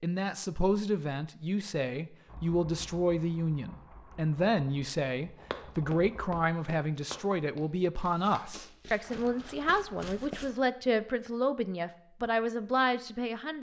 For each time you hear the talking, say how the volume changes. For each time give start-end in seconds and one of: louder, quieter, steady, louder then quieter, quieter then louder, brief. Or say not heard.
0.0-13.5 steady.